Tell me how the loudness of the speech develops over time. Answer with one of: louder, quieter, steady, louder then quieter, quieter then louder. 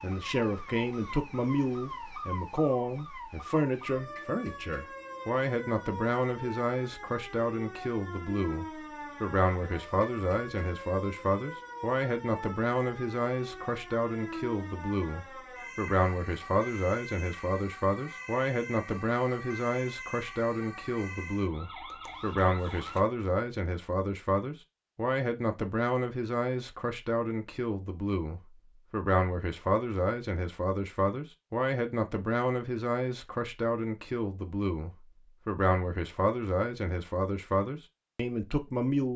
steady.